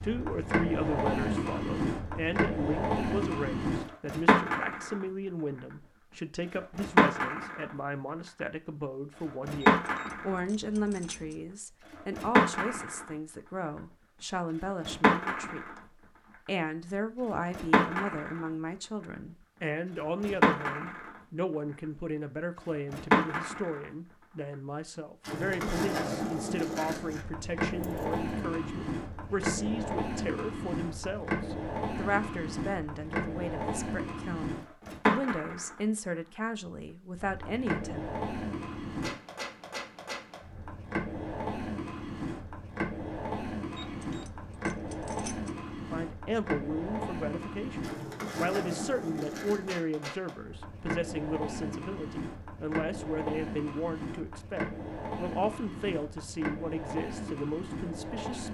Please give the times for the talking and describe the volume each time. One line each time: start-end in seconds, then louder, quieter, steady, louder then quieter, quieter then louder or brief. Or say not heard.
0.0-15.8 steady
16.4-38.0 steady
45.9-58.4 steady.